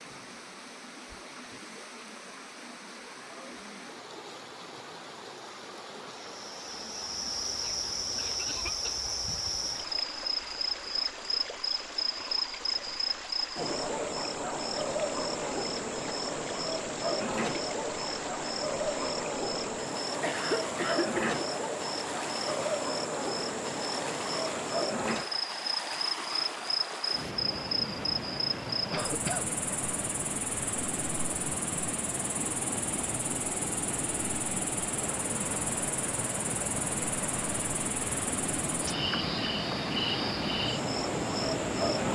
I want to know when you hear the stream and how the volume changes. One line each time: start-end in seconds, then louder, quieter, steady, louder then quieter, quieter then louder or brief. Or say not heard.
0.0-42.1 louder.